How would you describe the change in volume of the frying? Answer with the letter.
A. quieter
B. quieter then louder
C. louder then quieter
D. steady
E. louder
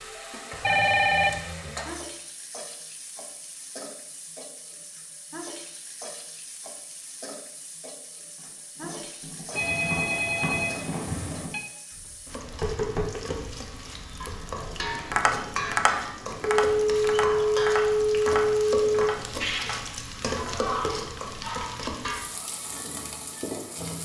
E.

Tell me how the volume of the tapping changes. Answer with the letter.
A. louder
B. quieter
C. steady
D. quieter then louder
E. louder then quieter
E.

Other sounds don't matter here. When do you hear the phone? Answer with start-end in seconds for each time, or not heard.
0.6-1.4, 9.5-11.6, 16.6-19.1.